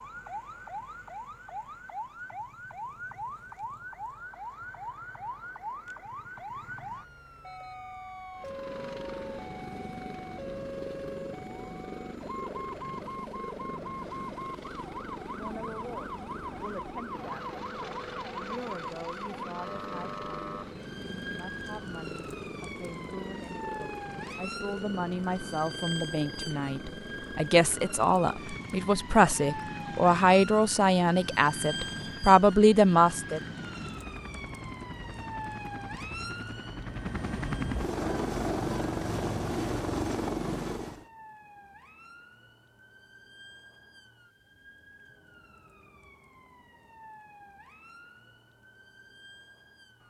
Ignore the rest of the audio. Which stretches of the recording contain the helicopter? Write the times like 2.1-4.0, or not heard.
8.3-41.0.